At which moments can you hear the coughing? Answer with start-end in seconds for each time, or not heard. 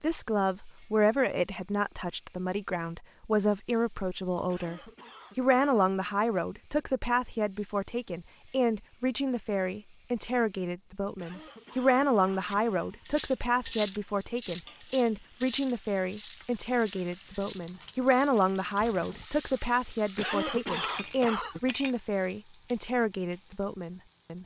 4.5-6.0, 11.2-12.6, 20.1-21.6.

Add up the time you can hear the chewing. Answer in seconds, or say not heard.
not heard.